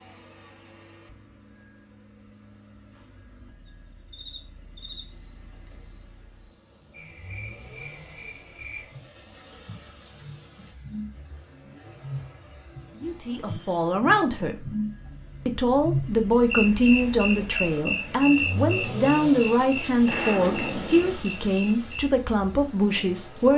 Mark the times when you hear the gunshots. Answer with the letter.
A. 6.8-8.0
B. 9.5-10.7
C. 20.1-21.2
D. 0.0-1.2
C.